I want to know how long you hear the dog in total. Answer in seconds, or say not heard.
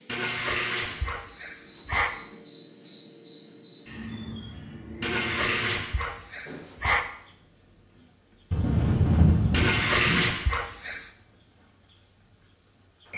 6 s.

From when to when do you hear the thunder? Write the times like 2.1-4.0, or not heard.
8.5-10.3.